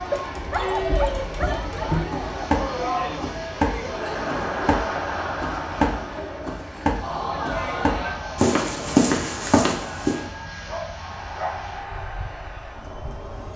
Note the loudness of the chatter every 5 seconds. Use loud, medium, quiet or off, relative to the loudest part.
loud, loud, medium.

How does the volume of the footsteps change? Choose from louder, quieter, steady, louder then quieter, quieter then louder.
louder.